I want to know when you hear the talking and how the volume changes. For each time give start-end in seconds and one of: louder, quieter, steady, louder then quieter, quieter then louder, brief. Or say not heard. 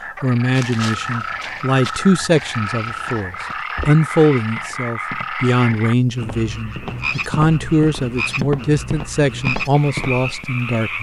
0.2-10.9 steady.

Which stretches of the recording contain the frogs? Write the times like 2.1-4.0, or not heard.
0.0-10.9.